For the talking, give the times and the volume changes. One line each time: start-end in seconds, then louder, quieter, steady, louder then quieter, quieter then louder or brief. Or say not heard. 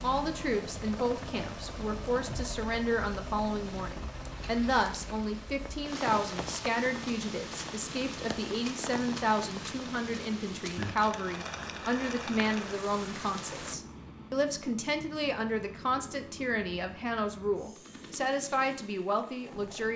0.0-19.9 steady.